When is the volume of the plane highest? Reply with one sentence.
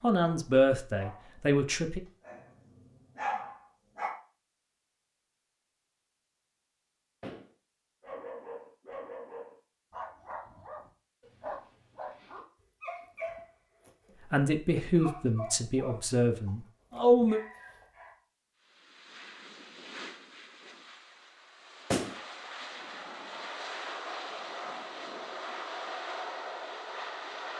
The volume of the plane peaks at 26 seconds.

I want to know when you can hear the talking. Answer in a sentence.
The talking can be heard from 0.0 to 2.0 s and from 14.3 to 17.4 s.